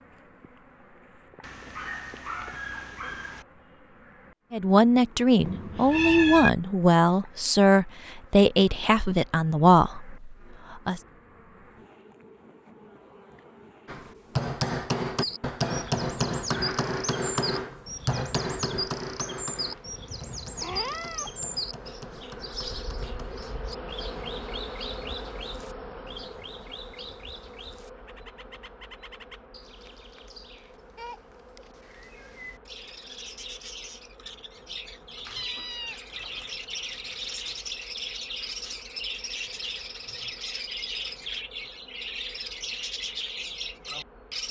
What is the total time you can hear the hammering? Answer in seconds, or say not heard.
10 s.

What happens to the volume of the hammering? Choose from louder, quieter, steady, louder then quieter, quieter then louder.
quieter.